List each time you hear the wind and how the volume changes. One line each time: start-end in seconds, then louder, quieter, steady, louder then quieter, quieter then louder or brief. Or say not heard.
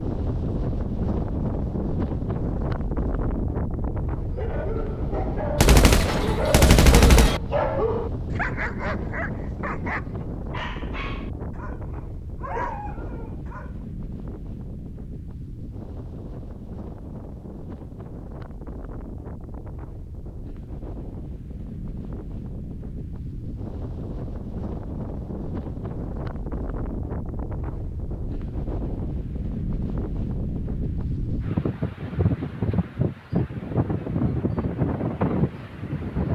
0.0-36.3 quieter then louder.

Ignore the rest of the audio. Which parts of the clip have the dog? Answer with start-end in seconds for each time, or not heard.
4.2-13.8.